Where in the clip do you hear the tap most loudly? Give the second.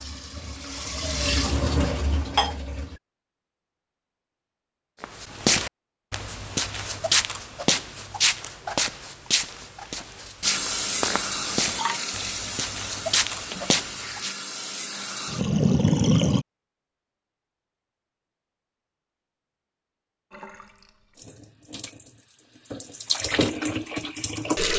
16 s.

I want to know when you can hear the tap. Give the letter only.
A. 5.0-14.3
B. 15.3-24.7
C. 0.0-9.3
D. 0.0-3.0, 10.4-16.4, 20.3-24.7
D.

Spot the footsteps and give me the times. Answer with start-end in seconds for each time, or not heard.
5.0-14.3.